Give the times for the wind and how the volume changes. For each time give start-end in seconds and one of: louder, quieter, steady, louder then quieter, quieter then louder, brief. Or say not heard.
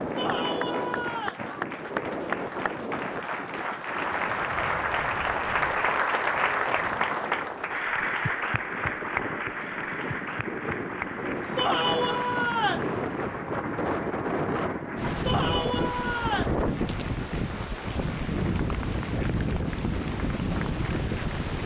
0.0-21.6 quieter then louder.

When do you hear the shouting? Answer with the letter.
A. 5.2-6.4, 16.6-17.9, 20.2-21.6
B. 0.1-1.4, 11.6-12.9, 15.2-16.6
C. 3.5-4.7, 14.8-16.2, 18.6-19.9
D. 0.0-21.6
B.